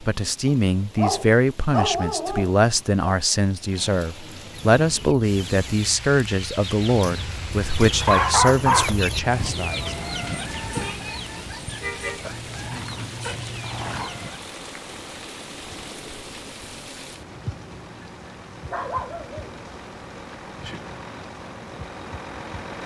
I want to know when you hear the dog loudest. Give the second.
8 s.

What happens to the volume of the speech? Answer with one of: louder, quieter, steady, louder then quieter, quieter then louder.
steady.